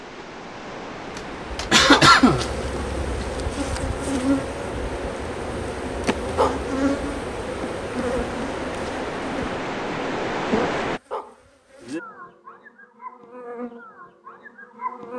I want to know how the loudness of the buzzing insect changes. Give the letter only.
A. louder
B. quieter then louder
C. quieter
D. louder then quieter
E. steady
C.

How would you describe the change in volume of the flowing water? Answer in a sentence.
The loudness of the flowing water goes up.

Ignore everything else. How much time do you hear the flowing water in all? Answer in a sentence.
You can hear the flowing water for 11 seconds altogether.